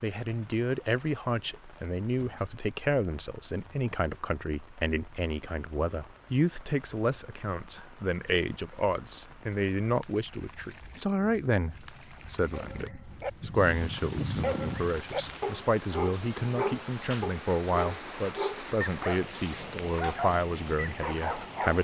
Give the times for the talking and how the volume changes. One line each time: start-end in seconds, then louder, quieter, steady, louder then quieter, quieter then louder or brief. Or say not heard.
0.0-21.7 steady.